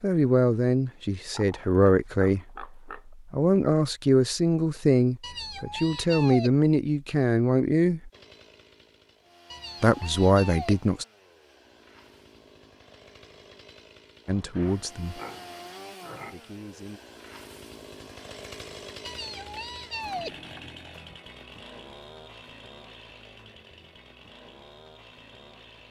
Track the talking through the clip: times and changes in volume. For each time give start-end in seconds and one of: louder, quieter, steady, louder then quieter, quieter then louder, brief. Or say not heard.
0.0-8.1 steady
9.8-11.1 brief
14.2-15.2 brief
16.3-17.0 brief.